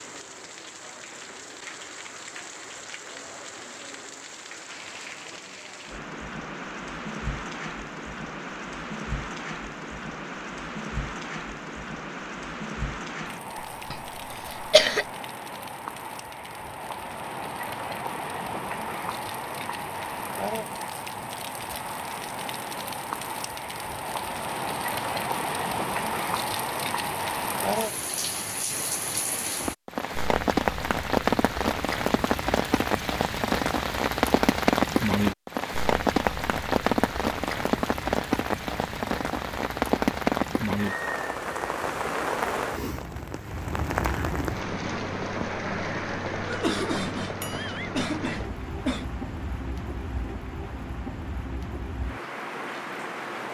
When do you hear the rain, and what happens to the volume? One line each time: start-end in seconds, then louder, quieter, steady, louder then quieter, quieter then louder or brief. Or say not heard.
0.0-53.4 louder then quieter.